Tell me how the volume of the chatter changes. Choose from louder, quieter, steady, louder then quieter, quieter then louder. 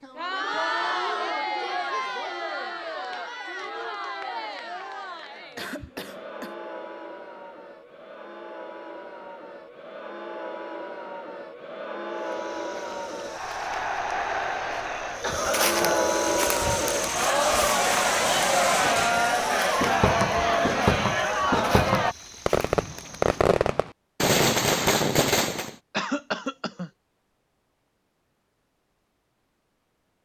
quieter then louder.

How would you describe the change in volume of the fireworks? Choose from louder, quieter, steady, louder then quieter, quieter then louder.
louder.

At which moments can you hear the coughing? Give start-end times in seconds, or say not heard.
5.5-6.5, 15.2-16.1, 25.9-26.9.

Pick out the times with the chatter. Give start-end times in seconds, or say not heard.
0.0-22.1.